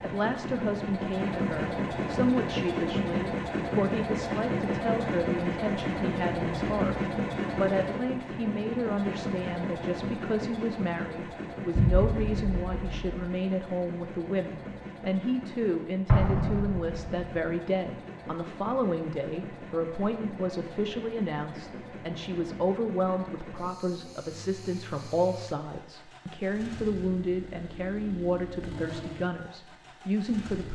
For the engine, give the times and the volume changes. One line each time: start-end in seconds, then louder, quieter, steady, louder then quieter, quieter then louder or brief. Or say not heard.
0.0-30.7 quieter.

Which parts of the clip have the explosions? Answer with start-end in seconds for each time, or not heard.
11.8-13.2, 16.1-17.2.